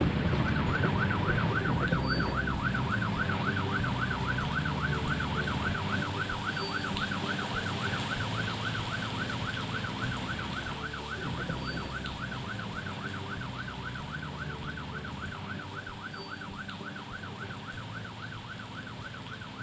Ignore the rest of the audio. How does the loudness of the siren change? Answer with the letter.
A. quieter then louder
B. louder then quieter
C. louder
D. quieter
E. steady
D.